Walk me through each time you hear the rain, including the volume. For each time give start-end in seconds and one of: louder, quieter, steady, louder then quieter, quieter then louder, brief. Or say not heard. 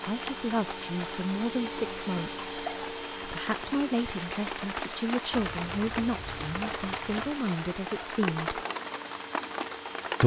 0.0-10.2 louder.